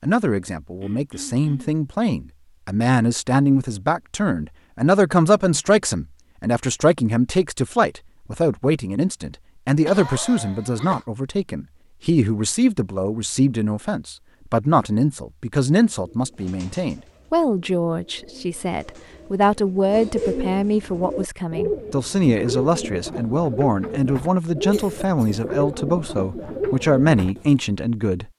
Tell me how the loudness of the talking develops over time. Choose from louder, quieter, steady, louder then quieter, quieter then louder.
steady.